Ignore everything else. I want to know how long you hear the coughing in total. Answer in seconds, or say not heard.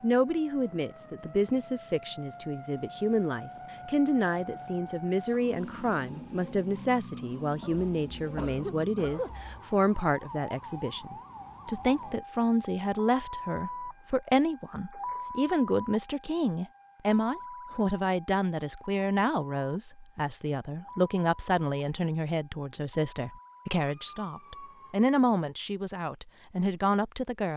2 s.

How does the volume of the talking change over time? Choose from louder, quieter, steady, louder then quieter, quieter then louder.
steady.